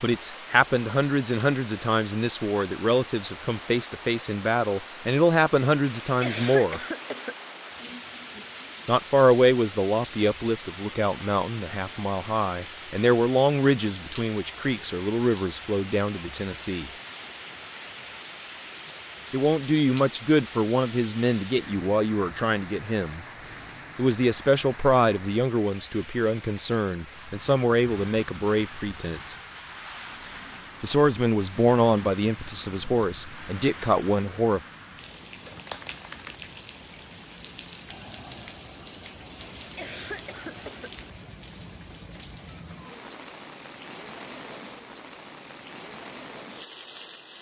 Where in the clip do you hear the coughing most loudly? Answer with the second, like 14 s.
6 s.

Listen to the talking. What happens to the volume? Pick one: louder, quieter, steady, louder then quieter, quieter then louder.
steady.